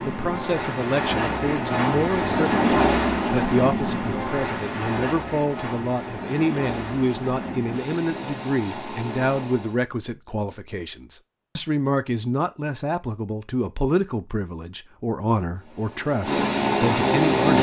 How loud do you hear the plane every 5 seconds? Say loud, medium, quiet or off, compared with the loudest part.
loud, medium, off, loud.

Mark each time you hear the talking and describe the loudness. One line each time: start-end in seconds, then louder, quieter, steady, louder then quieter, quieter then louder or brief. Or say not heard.
0.0-17.5 steady.